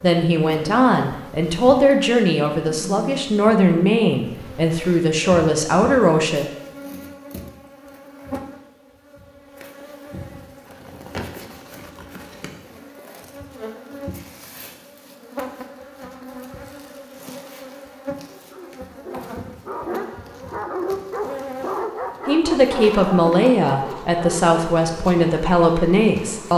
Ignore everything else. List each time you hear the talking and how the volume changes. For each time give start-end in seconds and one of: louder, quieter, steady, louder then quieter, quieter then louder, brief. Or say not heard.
0.0-6.5 steady
22.2-26.5 steady.